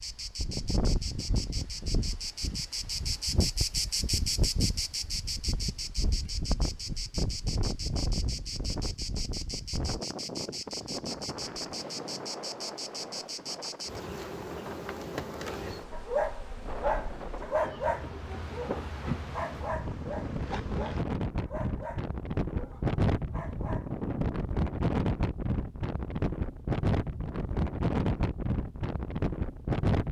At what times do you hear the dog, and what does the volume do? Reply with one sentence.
The dog can be heard from 15.9 to 23.9 s, getting quieter.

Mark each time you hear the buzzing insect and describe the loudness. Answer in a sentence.
You can hear the buzzing insect from 0.0 to 21.1 s, getting quieter.